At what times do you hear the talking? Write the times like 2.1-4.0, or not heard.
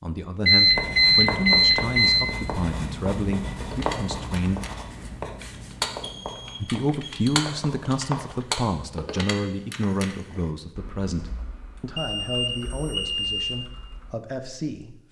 0.0-4.6, 6.6-15.0.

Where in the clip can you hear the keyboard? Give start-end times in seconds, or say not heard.
3.5-14.2.